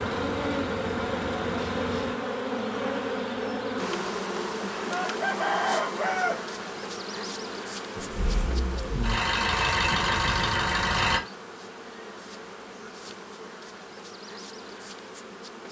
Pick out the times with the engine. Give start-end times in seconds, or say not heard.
0.0-2.1, 8.0-11.2.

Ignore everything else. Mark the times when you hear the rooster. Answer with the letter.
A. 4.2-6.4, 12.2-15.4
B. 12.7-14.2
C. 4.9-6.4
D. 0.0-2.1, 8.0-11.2
C.